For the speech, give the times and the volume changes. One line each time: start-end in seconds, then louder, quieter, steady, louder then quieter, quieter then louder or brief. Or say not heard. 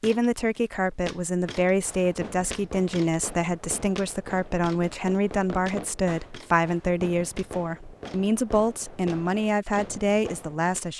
0.0-10.9 steady.